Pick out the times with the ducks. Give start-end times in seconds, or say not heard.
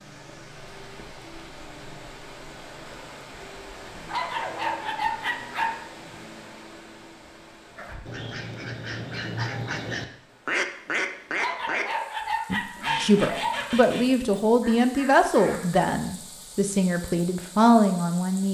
7.8-15.8.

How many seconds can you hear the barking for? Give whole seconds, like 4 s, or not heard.
4 s.